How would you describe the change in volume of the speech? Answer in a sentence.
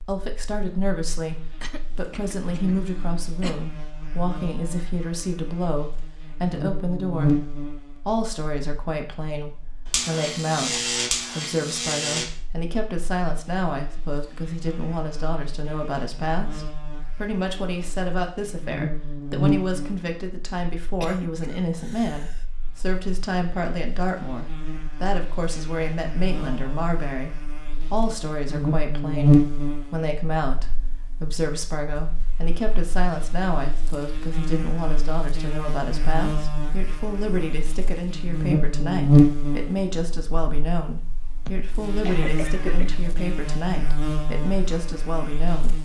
The loudness of the speech stays about the same.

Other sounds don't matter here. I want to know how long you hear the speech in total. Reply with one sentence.
You can hear the speech for 46 seconds altogether.